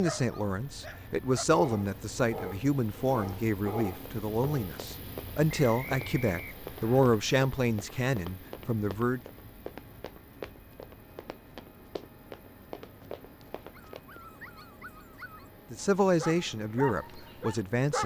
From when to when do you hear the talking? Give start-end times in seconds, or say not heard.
0.0-9.2, 15.7-18.0.